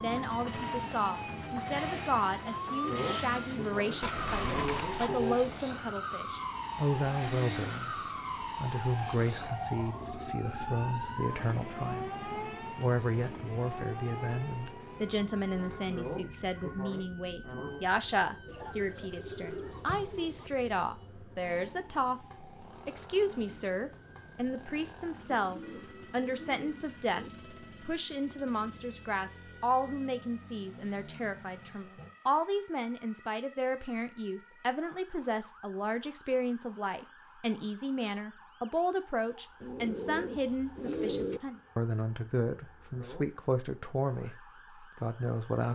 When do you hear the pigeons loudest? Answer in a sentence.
The loudest moment of the pigeons is at 41 seconds.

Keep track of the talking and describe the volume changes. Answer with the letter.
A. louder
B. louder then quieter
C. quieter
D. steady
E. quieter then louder
D.